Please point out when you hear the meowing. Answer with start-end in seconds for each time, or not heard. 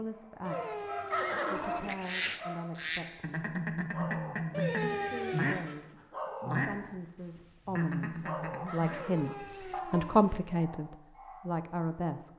0.4-2.4, 4.5-5.6, 8.9-10.4.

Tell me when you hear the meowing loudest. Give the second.
5 s.